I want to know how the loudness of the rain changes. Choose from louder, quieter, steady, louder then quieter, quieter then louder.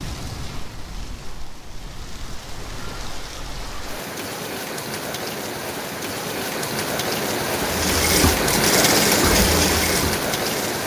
louder.